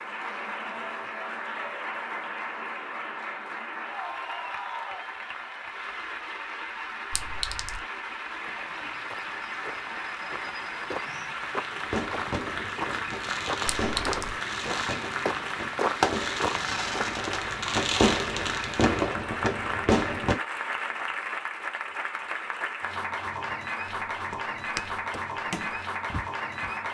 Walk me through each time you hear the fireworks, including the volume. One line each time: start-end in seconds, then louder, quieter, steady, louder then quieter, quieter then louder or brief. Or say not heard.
11.8-20.4 louder.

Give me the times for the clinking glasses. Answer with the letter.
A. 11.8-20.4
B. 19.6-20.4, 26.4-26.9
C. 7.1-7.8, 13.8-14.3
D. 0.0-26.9
C.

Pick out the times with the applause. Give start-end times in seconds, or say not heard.
0.0-26.9.